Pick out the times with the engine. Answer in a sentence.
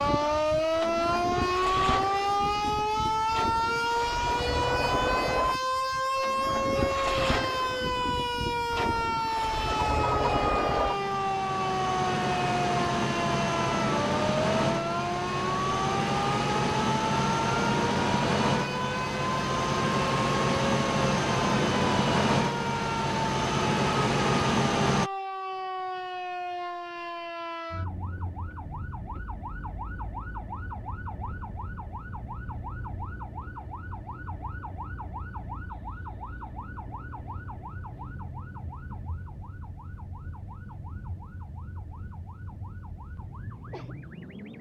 You can hear the engine from 0.0 to 25.1 s.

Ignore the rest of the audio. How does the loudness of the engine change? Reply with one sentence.
The volume of the engine goes up.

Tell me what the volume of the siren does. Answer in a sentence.
The volume of the siren goes down.